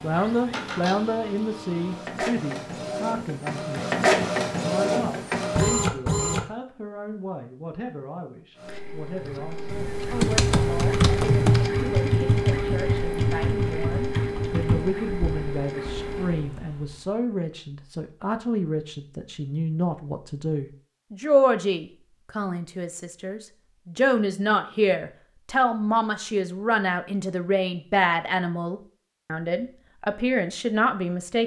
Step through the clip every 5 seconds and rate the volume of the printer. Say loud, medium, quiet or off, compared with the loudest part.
loud, loud, loud, medium, off, off, off.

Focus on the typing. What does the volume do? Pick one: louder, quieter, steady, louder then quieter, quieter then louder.
quieter.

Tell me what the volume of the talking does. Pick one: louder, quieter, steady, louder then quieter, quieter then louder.
quieter then louder.